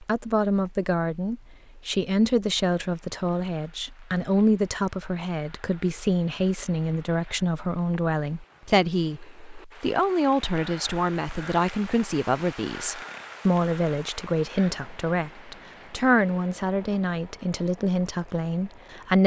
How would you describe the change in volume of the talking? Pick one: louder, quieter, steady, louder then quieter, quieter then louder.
steady.